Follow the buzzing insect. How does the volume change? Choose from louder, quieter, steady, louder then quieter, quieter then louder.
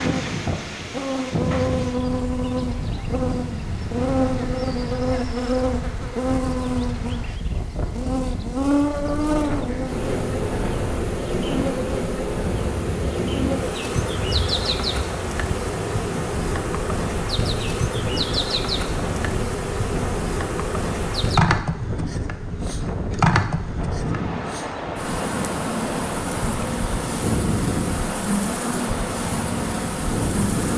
steady.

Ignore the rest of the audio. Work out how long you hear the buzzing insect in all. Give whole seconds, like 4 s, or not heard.
31 s.